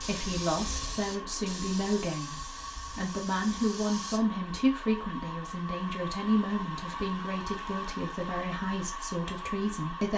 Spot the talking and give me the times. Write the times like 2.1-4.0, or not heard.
0.0-10.1.